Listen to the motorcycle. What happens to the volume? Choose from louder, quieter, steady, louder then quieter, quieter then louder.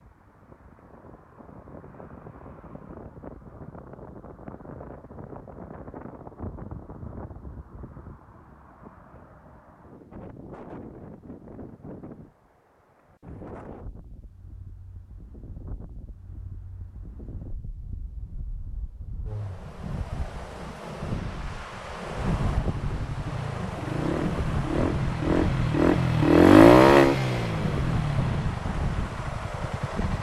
louder then quieter.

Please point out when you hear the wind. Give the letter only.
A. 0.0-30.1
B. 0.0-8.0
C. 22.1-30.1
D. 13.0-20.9
A.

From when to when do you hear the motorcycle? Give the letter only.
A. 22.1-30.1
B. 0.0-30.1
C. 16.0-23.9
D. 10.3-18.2
A.